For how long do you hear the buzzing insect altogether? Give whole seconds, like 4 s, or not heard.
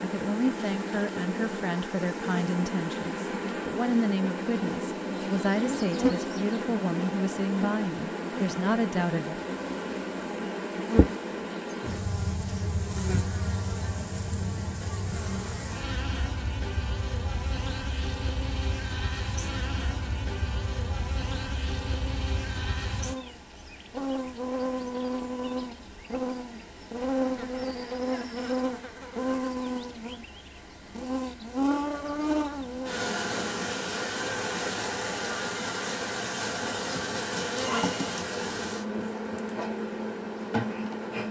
41 s.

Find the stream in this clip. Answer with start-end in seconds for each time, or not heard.
not heard.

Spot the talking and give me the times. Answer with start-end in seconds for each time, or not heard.
0.0-9.4.